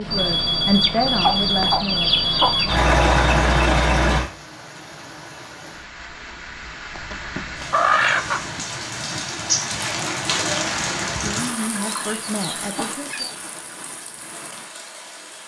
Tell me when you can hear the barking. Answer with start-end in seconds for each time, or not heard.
not heard.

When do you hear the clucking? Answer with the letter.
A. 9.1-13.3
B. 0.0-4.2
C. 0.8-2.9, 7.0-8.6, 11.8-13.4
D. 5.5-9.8
C.